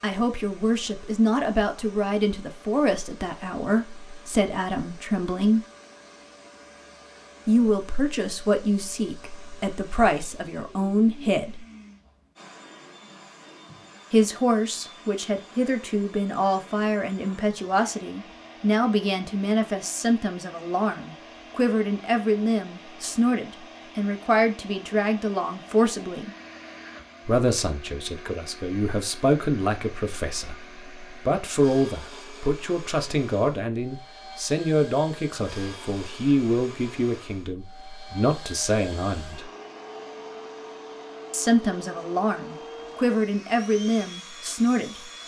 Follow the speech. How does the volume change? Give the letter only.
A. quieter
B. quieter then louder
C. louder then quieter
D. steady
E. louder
D.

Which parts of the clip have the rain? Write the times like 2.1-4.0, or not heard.
not heard.